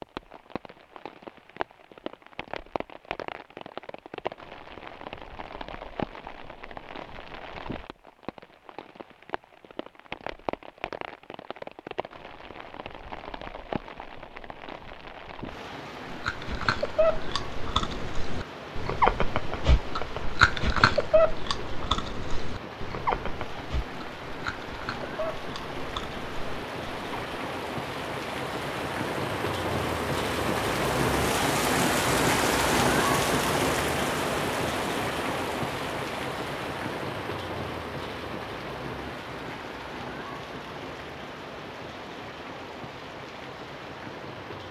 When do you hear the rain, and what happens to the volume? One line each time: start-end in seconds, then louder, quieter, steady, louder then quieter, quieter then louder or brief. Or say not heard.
0.0-44.6 louder then quieter.